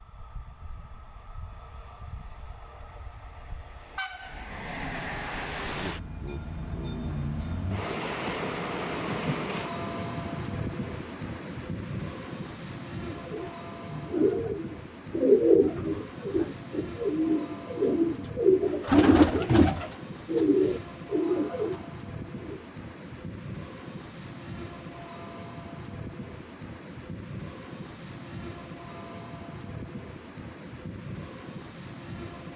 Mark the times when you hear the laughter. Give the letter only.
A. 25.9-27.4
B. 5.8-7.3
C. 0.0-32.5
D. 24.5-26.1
B.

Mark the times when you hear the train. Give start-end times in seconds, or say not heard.
0.0-32.5.